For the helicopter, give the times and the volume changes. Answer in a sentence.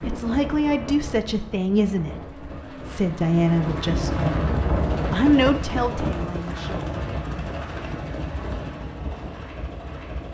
The helicopter can be heard from 0.0 to 10.2 s, getting louder then quieter.